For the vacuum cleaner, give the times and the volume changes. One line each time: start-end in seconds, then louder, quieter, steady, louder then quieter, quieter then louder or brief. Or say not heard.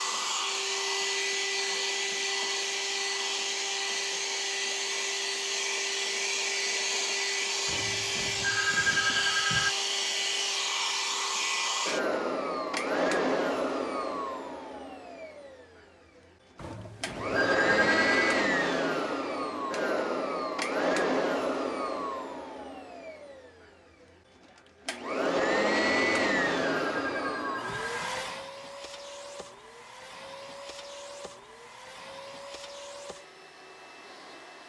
0.0-15.8 steady
17.0-23.6 quieter
24.9-34.6 quieter.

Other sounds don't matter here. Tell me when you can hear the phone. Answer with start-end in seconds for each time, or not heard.
7.7-9.8, 16.6-18.5, 25.9-28.2.